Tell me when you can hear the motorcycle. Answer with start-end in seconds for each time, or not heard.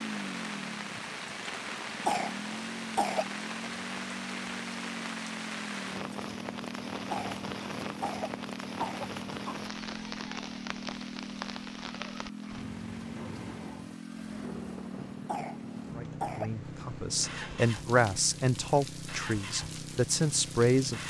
0.0-21.0.